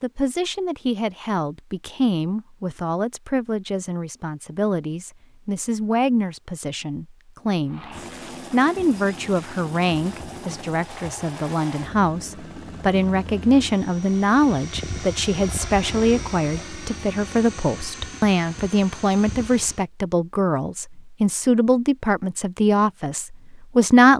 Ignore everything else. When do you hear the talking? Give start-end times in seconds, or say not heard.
0.0-7.8, 8.5-24.1.